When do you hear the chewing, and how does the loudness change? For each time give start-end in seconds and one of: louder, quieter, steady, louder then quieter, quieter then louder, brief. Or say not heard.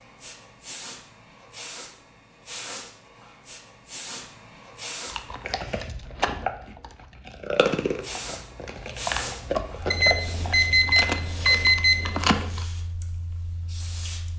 5.0-12.7 steady.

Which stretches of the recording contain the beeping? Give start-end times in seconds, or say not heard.
9.9-12.2.